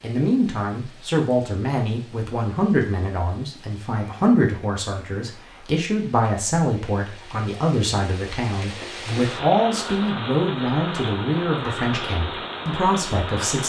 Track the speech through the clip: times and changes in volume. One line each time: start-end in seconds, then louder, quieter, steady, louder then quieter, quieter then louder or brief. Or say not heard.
0.0-13.6 steady.